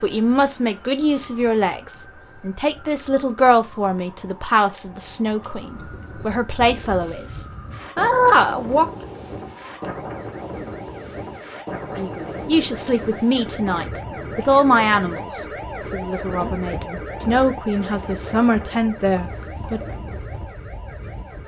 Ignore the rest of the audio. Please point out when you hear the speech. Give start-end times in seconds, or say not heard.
0.0-8.8, 11.9-19.8.